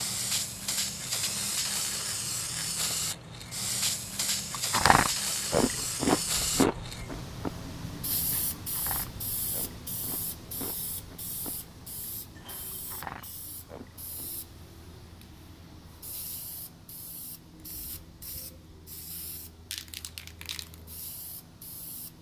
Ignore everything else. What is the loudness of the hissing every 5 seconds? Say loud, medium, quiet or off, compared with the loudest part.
loud, loud, quiet, quiet, quiet.